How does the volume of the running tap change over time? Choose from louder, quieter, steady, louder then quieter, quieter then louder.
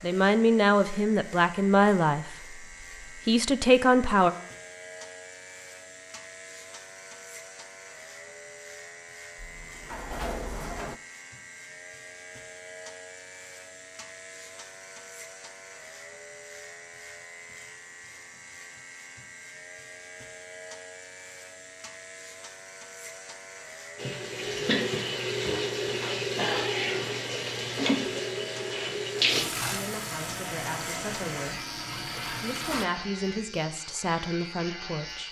quieter.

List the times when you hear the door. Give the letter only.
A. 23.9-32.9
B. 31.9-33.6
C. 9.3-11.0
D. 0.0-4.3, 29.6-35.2
C.